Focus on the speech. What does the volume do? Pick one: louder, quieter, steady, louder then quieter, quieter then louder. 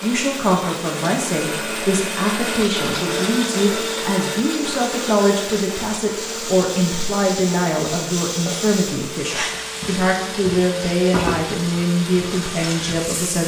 steady.